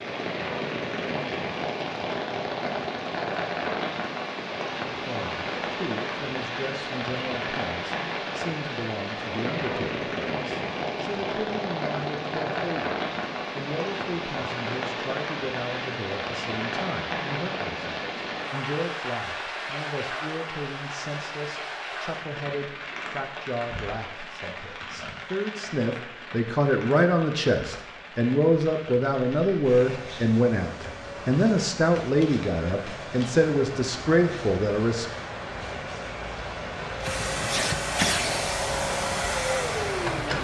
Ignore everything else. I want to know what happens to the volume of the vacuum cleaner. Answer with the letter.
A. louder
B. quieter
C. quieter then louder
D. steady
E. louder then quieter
A.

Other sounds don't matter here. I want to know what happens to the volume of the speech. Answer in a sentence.
The volume of the speech goes up.